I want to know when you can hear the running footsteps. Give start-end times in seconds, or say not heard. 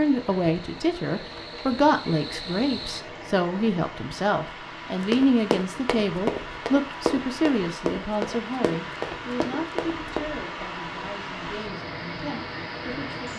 5.0-10.2.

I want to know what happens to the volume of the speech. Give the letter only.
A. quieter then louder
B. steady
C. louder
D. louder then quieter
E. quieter
E.